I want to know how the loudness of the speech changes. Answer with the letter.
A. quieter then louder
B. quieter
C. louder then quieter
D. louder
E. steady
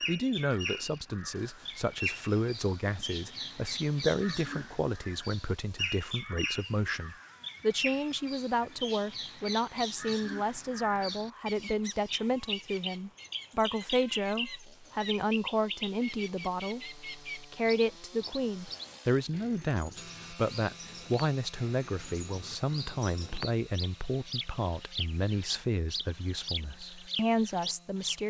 E.